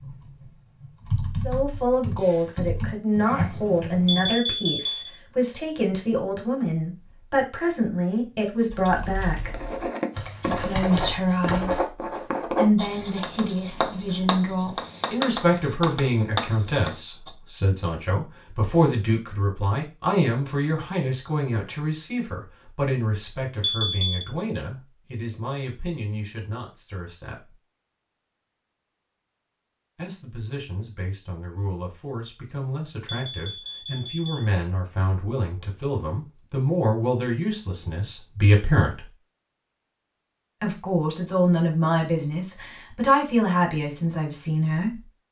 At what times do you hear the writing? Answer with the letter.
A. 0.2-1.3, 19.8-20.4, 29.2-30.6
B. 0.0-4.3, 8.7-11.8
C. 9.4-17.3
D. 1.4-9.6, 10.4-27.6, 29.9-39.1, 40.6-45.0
C.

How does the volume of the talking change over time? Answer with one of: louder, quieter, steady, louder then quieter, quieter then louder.
quieter then louder.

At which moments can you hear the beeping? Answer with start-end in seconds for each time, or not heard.
4.0-5.2, 23.6-24.2, 33.0-34.5.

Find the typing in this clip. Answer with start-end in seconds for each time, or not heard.
0.0-4.3, 8.7-11.8.